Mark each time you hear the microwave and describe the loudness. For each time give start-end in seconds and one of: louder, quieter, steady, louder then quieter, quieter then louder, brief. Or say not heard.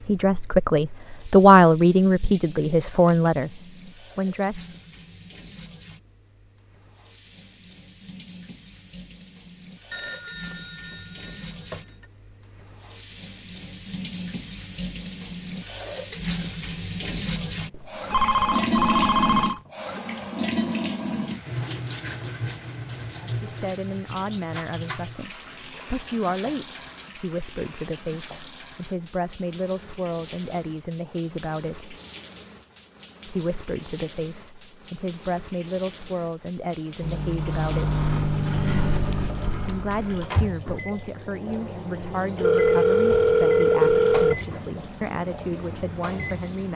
37.0-46.7 quieter.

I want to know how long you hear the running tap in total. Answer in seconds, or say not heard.
47 s.